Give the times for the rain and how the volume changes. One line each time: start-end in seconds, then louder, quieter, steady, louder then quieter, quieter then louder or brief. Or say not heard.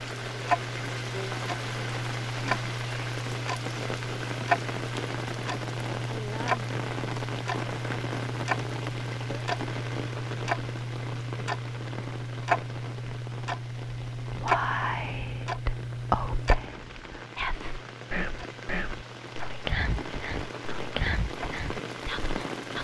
0.0-22.8 quieter then louder.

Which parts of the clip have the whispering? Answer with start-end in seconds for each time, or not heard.
14.3-22.8.